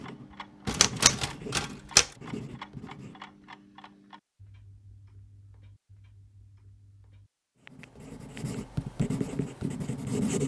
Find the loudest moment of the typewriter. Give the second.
2 s.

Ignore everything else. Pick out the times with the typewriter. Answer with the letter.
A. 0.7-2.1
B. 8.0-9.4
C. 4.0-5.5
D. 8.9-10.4
A.